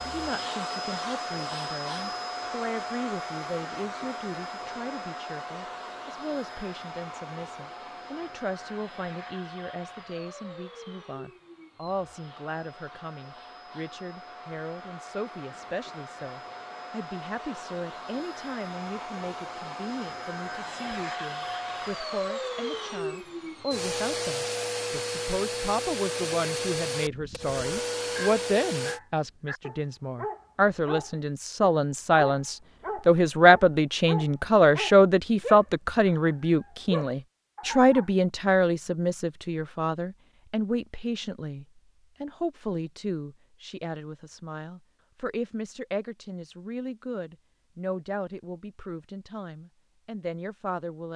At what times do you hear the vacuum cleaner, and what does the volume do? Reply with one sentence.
You can hear the vacuum cleaner from 0.0 to 29.0 s, getting quieter then louder.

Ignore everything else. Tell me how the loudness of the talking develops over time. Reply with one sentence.
The loudness of the talking goes up, then down.